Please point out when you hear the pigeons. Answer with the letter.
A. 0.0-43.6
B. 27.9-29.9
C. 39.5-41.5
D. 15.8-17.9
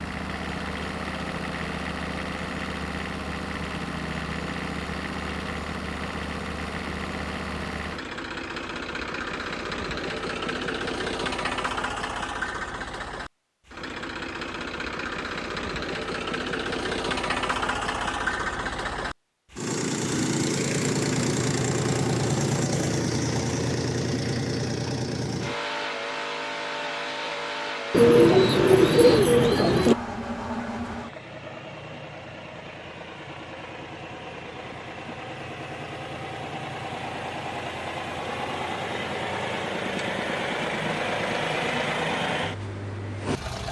B.